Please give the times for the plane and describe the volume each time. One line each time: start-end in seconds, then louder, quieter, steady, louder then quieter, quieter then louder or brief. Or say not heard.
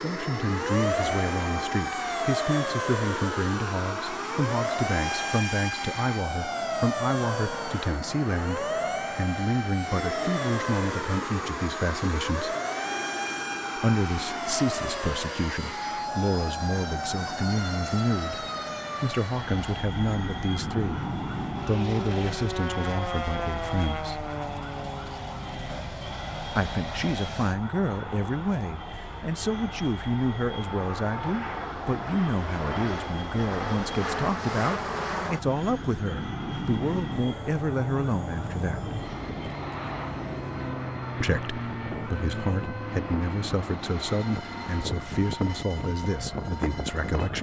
0.0-47.3 steady.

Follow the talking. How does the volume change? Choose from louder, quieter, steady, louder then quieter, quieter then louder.
steady.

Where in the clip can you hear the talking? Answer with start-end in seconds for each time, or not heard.
0.0-12.6, 13.8-24.2, 26.6-39.0, 41.2-47.3.